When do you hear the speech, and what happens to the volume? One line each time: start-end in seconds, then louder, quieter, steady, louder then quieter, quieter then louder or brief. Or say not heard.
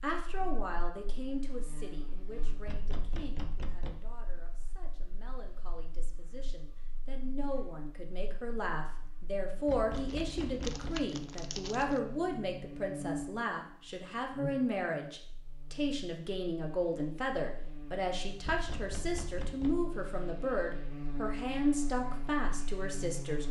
0.0-23.4 louder.